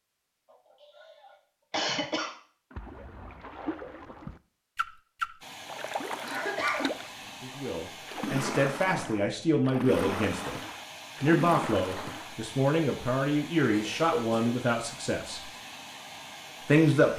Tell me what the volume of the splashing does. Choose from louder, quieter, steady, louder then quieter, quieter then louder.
louder.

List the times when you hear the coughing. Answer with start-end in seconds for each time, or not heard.
0.5-2.3, 6.2-7.0, 13.7-14.6.